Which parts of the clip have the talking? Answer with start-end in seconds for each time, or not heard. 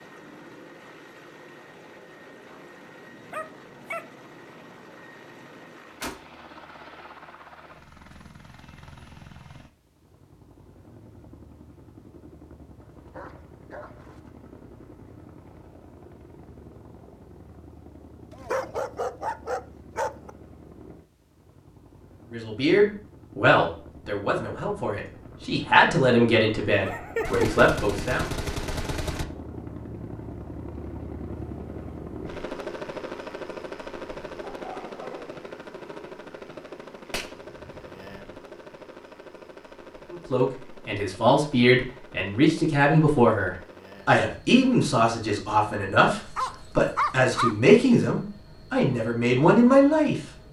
22.3-28.3, 40.1-50.1.